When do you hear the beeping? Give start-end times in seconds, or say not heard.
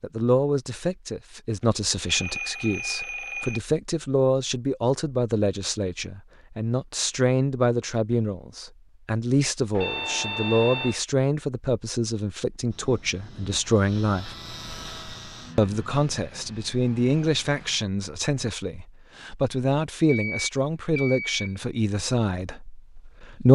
1.6-3.6, 9.8-11.0, 20.1-21.6.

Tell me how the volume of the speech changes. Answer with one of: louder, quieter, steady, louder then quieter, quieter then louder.
steady.